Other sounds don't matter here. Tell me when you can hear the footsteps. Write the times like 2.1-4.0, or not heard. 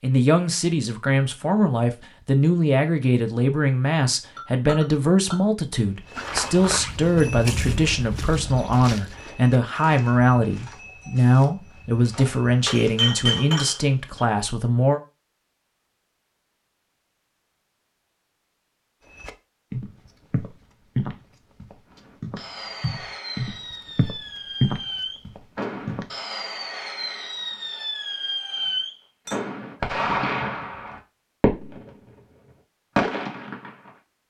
5.9-13.1, 19.1-26.1.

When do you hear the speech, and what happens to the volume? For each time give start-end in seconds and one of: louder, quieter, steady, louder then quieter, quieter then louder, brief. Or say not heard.
0.0-15.0 steady.